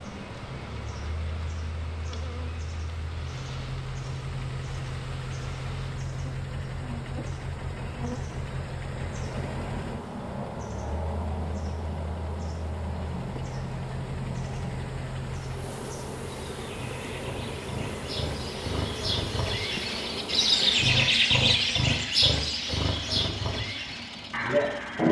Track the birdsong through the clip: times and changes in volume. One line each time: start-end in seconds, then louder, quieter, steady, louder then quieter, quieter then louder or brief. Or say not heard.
0.0-25.0 louder.